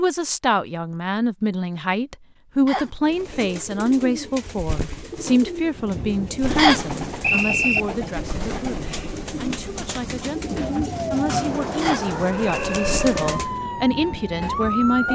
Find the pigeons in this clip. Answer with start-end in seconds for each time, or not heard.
3.0-13.7.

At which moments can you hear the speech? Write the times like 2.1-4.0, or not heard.
0.0-15.0.